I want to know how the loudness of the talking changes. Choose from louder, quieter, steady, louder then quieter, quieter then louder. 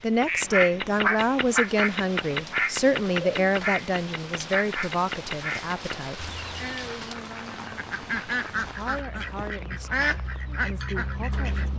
quieter.